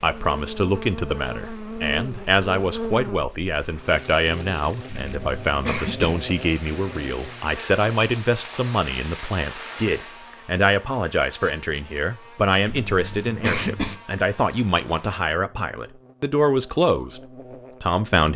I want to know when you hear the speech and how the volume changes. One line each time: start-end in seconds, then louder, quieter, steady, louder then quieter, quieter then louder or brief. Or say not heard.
0.0-17.2 steady
17.8-18.3 brief.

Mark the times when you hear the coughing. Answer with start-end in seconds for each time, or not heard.
5.0-6.2, 12.7-13.9.